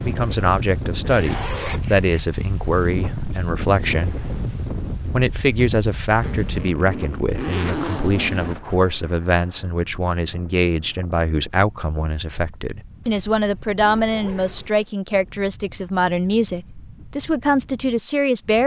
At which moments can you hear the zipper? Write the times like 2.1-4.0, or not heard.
1.0-2.2, 6.2-8.7, 13.0-14.9.